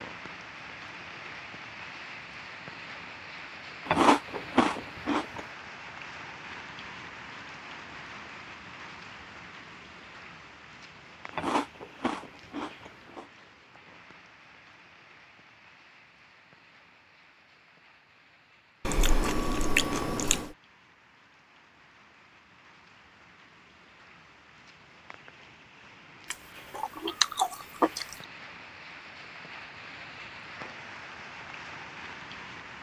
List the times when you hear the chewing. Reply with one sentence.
The chewing can be heard from 3.9 to 5.5 s, from 11.3 to 13.2 s, from 18.9 to 20.5 s and from 26.3 to 28.1 s.